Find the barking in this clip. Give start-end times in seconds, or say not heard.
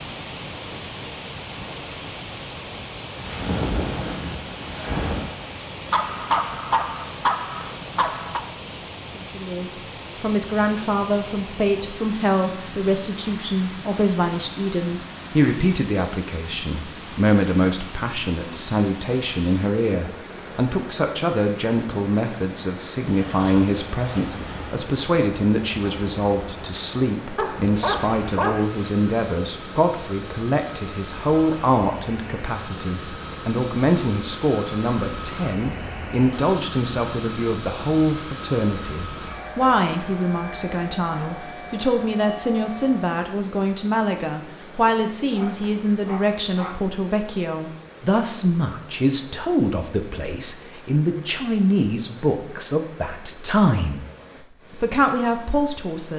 5.9-8.4, 27.4-28.7, 45.3-46.8.